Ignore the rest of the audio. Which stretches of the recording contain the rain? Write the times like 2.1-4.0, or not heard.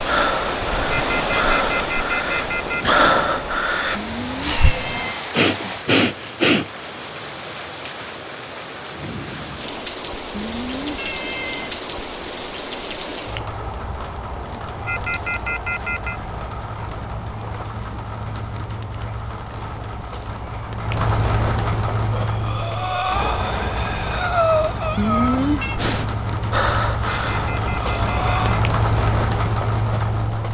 0.0-30.4.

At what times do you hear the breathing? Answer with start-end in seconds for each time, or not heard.
0.1-6.7, 22.1-28.6.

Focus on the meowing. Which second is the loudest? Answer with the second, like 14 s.
25 s.